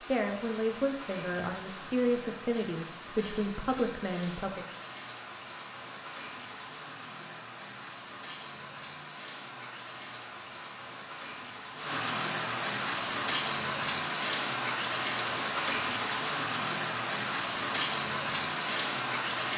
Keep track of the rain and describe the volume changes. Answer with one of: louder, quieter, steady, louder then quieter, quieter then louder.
louder.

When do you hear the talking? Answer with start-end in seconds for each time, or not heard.
0.1-4.7.